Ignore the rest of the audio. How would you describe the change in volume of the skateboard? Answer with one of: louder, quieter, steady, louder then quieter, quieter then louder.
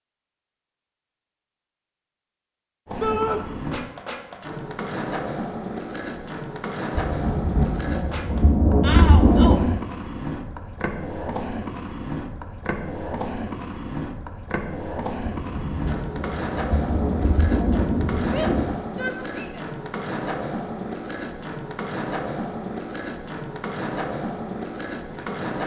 steady.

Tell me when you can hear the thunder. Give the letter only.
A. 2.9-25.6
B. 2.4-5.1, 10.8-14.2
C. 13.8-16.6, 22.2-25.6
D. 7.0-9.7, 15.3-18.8
D.